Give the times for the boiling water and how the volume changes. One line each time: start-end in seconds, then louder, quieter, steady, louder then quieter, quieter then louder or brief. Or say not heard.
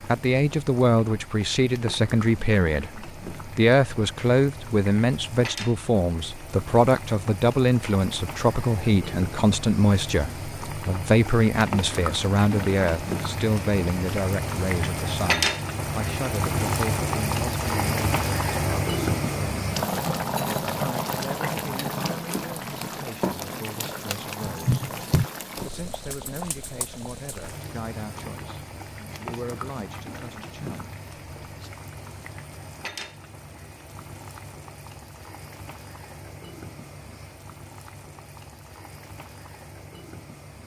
0.0-40.6 louder then quieter.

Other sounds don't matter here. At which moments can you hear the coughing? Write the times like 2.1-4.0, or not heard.
24.4-25.3.